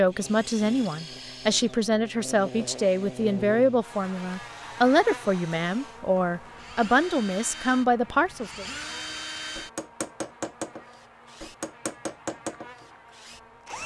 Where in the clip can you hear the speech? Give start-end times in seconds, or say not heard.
0.0-8.7.